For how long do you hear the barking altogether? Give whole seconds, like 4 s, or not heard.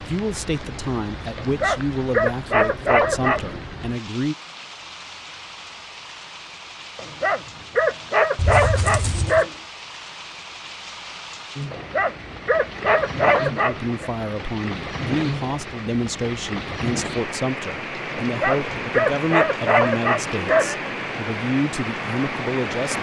10 s.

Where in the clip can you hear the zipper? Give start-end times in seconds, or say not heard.
8.3-9.4.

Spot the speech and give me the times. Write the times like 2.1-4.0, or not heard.
0.0-4.3, 13.4-22.9.